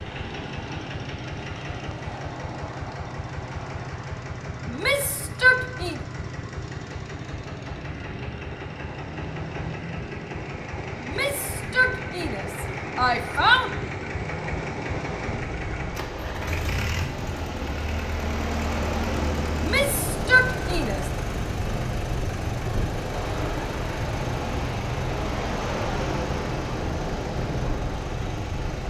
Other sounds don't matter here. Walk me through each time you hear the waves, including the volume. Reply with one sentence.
You can hear the waves from 0.0 to 28.8 s, getting louder.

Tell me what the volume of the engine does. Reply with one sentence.
The loudness of the engine stays about the same.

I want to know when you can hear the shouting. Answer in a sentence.
The shouting can be heard from 4.7 to 6.0 s, from 11.0 to 13.7 s and from 19.6 to 21.1 s.